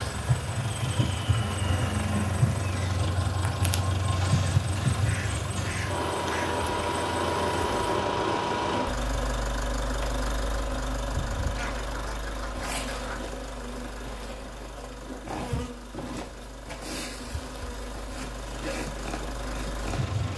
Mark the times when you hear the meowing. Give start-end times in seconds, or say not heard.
not heard.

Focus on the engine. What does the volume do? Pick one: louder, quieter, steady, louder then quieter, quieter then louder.
quieter.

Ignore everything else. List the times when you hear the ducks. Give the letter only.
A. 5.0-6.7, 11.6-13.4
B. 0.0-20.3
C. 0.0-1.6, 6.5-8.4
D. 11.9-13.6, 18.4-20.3
A.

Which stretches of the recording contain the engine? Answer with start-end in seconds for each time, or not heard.
0.0-20.3.